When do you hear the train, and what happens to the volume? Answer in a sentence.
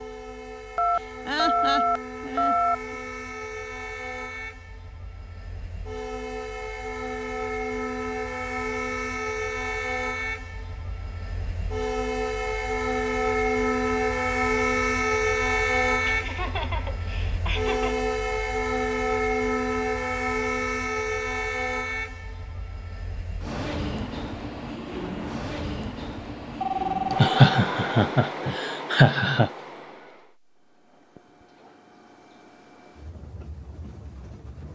You can hear the train from 0.0 to 34.6 s, getting louder then quieter.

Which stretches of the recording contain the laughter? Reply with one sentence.
You can hear the laughter from 0.9 to 3.0 s, from 16.1 to 18.1 s and from 27.1 to 29.5 s.